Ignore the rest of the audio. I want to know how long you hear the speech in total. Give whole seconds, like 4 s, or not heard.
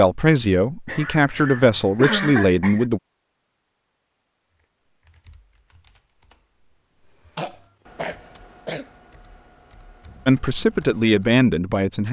5 s.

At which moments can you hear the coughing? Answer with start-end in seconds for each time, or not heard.
0.8-2.9, 7.3-8.8.